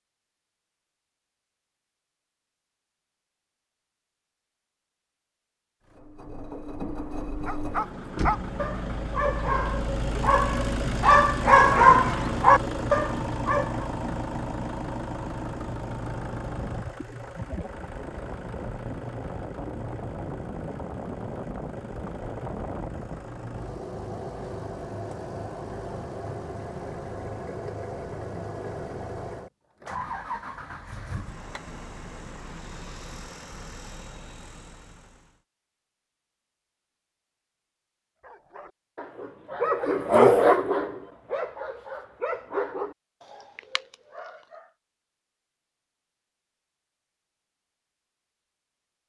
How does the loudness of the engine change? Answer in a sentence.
The loudness of the engine goes down.